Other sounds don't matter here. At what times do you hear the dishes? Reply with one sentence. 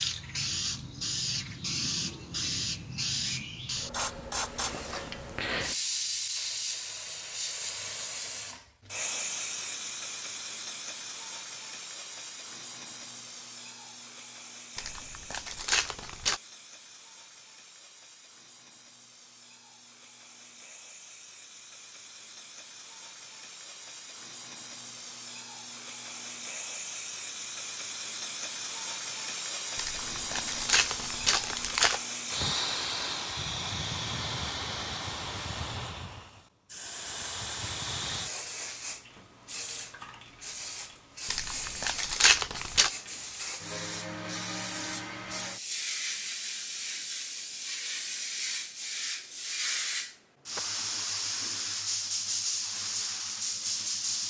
The dishes can't be heard in this clip.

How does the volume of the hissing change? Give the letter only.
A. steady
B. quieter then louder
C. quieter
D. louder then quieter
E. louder
B.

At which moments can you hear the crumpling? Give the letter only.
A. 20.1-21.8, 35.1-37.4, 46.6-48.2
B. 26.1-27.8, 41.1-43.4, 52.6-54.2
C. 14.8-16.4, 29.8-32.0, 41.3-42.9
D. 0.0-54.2
C.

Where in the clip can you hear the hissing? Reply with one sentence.
The hissing can be heard from 0.0 to 54.2 s.